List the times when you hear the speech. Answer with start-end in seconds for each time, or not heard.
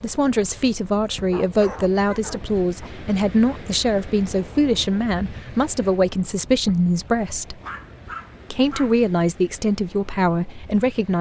0.0-7.5, 8.5-11.1.